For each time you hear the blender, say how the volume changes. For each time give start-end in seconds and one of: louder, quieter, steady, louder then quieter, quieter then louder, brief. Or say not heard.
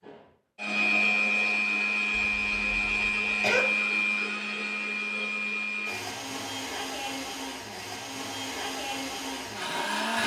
0.0-10.2 quieter.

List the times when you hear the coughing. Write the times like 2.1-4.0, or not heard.
2.1-3.6.